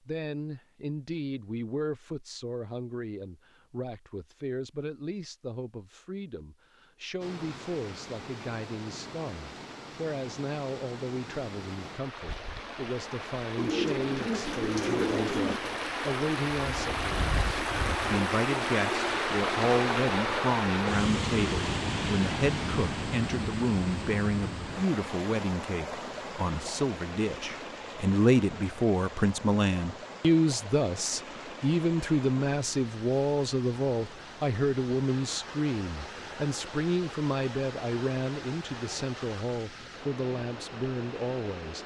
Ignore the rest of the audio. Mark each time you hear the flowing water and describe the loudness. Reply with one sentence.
The flowing water can be heard from 7.2 to 41.8 s, getting louder then quieter.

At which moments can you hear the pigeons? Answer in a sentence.
You can hear the pigeons from 13.6 to 15.6 s.